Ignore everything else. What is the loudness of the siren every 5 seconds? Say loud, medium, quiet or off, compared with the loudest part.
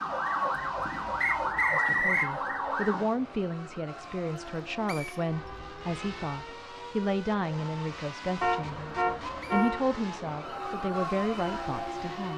loud, off, medium.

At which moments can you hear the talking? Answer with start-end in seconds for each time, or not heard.
1.7-12.3.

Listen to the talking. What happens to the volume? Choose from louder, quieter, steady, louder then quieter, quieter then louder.
steady.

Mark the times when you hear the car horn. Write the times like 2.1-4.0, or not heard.
0.5-1.6, 5.2-6.4, 8.4-9.8.